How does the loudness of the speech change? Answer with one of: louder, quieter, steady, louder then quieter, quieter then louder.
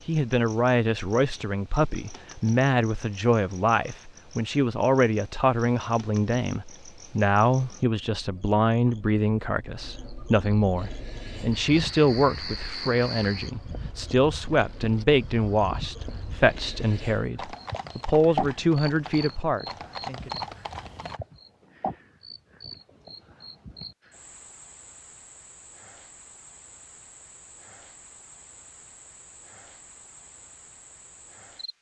steady.